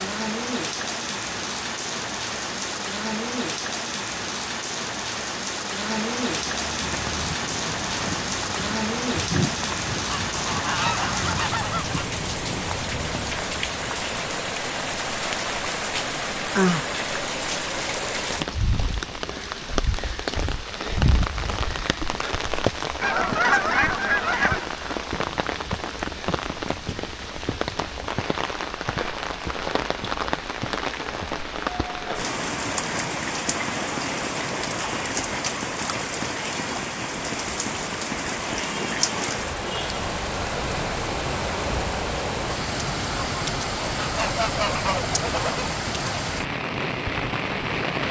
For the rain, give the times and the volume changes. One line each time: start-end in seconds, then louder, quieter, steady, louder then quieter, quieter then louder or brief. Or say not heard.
0.0-48.0 steady.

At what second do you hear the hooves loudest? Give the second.
9 s.